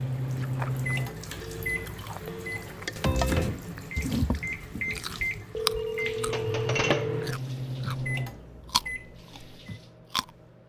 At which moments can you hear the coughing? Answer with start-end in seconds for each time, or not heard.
not heard.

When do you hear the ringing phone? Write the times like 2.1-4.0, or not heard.
1.4-2.7, 5.5-7.4.